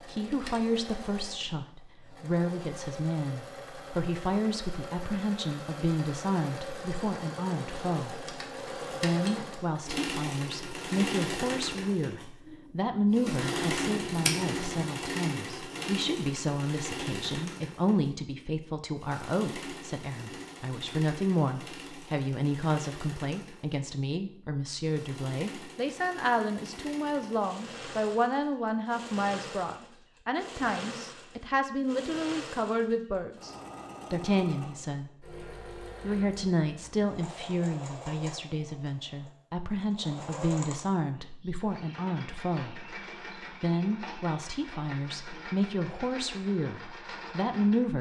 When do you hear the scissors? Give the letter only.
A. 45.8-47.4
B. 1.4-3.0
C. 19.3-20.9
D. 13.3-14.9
D.